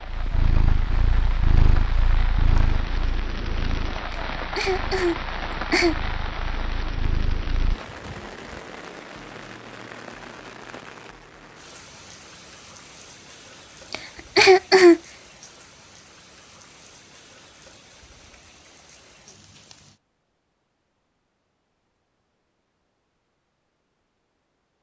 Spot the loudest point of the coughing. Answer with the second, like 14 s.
15 s.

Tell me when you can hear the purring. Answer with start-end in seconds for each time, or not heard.
0.0-7.8.